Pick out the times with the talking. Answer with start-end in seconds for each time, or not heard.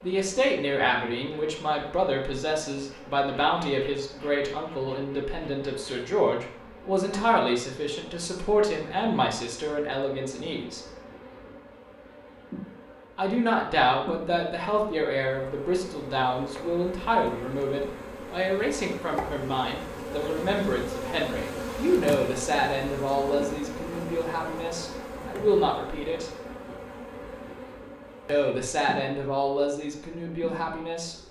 0.0-10.8, 13.2-26.3, 28.2-31.1.